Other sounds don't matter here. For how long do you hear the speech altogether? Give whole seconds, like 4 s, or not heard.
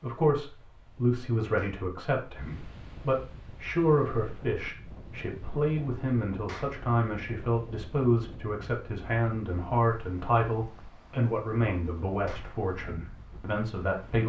14 s.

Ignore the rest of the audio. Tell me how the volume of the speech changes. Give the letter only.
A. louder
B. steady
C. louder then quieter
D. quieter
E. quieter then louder
B.